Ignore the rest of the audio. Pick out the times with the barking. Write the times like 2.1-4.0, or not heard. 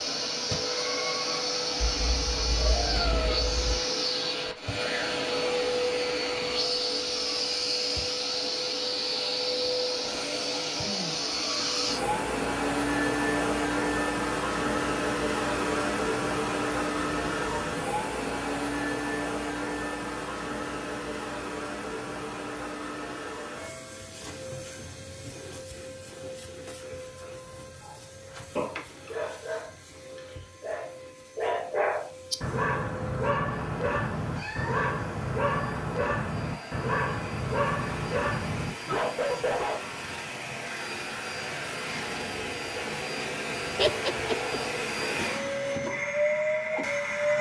27.8-39.9.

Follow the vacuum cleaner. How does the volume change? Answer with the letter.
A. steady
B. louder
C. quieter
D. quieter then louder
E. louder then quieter
D.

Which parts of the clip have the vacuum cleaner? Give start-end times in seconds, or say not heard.
0.0-47.3.